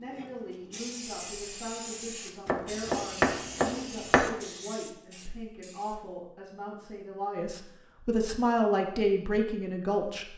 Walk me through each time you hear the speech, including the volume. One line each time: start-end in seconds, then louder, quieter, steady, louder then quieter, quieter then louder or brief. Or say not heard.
0.0-10.3 louder.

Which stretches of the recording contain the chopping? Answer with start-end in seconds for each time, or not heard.
2.5-4.3.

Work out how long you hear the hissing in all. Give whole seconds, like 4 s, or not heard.
6 s.